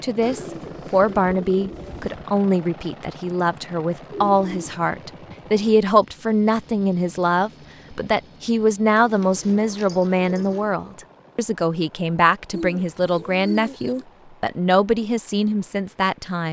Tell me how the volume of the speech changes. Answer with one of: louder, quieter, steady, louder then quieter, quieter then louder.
steady.